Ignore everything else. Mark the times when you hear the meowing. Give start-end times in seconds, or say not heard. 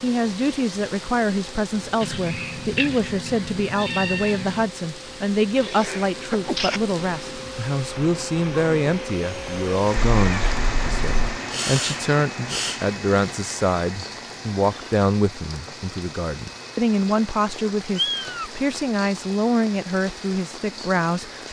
2.0-4.7, 10.2-11.4, 17.9-18.5.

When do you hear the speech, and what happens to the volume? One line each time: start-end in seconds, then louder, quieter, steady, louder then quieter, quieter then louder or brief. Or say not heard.
0.0-21.4 steady.